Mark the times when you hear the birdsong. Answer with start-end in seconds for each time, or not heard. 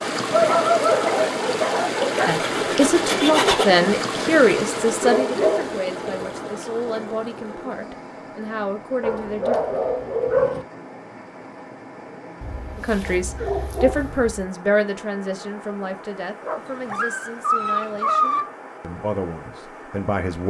not heard.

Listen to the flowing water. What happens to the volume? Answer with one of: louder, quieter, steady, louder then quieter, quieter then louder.
quieter.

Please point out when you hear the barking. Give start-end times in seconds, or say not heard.
0.3-2.3, 5.0-5.8, 9.0-10.7, 12.4-14.4, 16.4-18.4.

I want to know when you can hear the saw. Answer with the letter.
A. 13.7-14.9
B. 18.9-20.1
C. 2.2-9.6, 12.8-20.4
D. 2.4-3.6
D.